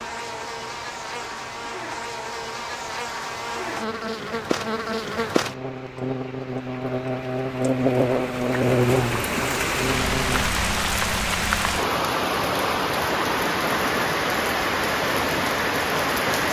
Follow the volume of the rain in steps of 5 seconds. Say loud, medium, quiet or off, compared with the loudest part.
quiet, medium, loud, loud.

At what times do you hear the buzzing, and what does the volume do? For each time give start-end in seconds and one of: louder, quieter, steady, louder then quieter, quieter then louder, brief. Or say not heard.
0.0-10.6 louder.